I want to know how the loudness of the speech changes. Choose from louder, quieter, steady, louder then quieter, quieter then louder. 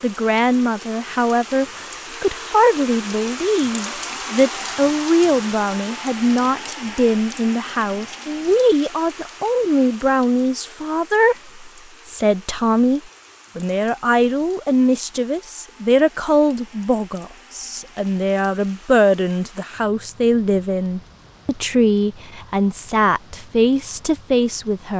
steady.